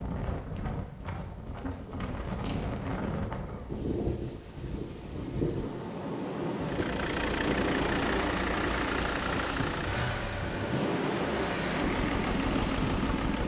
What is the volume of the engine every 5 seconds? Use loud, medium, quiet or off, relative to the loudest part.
off, loud, loud.